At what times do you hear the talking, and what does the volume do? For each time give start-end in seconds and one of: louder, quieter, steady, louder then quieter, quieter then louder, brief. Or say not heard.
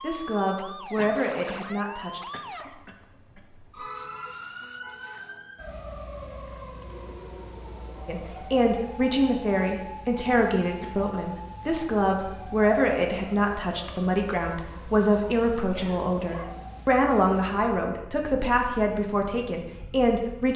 0.0-2.3 brief
8.1-20.5 steady.